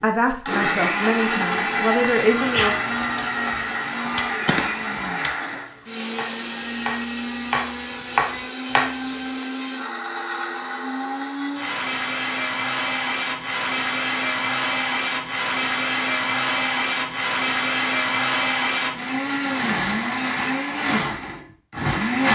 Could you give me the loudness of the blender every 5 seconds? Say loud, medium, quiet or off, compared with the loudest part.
loud, medium, loud, loud, loud.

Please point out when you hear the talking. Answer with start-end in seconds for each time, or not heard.
0.0-2.8.